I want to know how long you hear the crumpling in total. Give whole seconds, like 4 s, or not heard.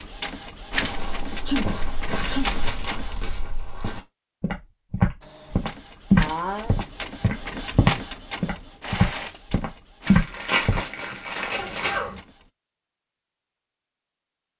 3 s.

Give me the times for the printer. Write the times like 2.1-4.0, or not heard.
0.0-3.2, 5.2-12.5.